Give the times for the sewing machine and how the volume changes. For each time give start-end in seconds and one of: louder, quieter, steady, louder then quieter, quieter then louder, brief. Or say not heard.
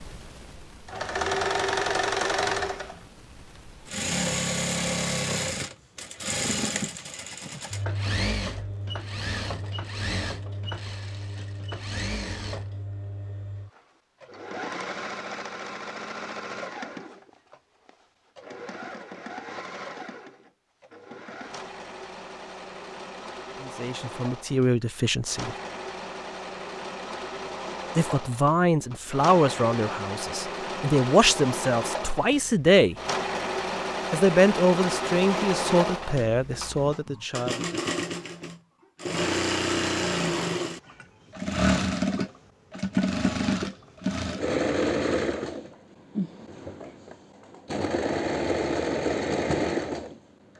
0.0-50.5 quieter then louder.